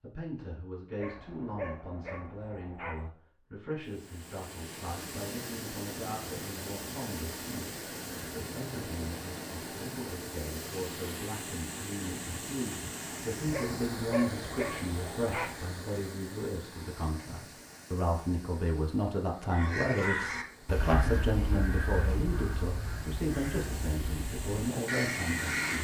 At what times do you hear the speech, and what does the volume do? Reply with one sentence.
The speech can be heard from 0.0 to 25.6 s, getting louder.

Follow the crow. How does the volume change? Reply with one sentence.
The volume of the crow goes down, then up.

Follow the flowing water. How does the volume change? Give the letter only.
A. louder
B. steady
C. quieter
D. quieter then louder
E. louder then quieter
D.